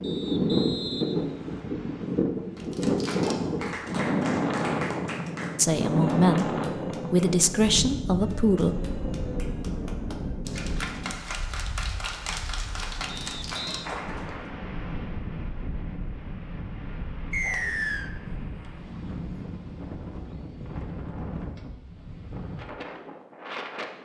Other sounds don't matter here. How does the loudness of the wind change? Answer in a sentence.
The loudness of the wind goes down.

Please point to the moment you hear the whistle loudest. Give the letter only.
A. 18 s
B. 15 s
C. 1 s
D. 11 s
A.